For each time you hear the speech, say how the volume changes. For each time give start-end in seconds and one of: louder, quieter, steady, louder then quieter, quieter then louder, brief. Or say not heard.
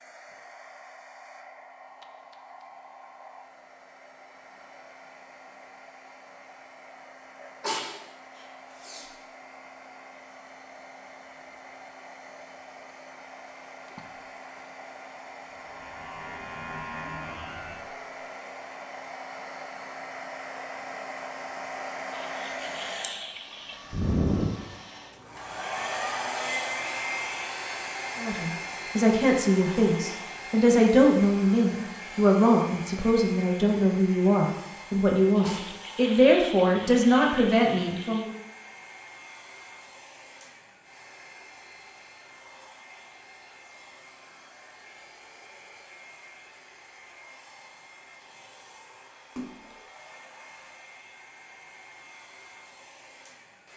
28.1-38.3 steady.